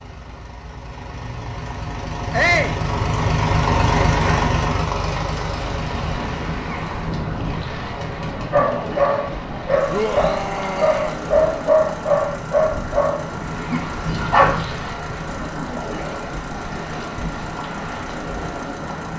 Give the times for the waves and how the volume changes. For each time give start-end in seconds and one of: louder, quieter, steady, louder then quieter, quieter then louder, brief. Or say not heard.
5.3-19.1 steady.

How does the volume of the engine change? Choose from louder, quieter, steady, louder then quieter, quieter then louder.
quieter.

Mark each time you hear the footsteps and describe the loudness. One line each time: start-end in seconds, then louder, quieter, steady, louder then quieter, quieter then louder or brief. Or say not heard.
not heard.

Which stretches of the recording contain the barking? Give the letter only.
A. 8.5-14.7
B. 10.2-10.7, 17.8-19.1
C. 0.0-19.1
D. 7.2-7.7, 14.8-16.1
A.